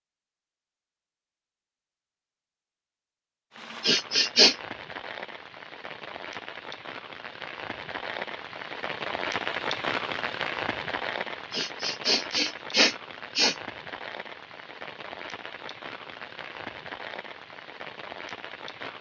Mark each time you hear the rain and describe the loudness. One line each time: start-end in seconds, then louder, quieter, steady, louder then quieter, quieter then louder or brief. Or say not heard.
3.5-18.9 louder then quieter.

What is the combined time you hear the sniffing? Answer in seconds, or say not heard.
3 s.